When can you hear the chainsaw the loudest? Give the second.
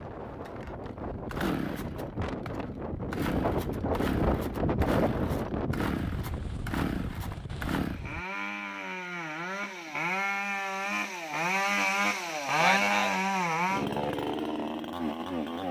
13 s.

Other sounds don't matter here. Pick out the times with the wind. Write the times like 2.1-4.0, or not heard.
0.0-8.2.